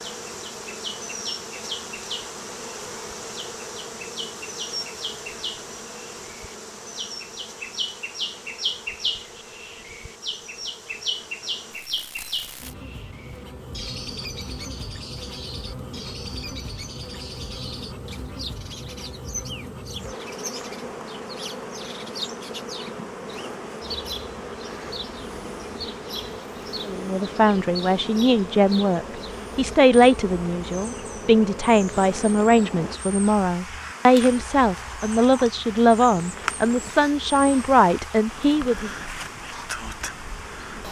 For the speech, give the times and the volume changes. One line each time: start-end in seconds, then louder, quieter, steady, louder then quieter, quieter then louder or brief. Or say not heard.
26.9-38.9 steady.